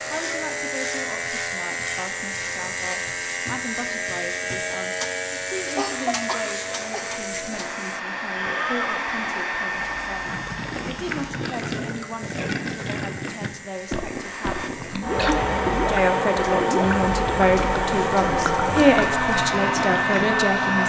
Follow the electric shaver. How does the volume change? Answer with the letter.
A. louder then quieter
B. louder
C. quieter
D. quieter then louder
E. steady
C.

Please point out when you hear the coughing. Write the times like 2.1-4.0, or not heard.
5.8-7.0, 14.5-15.3.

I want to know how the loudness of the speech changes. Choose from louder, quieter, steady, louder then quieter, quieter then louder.
louder.